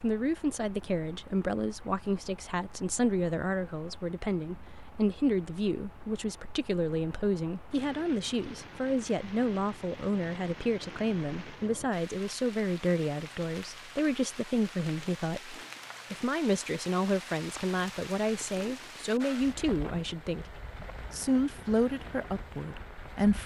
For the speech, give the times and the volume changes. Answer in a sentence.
You can hear the speech from 0.0 to 23.4 s, at a steady volume.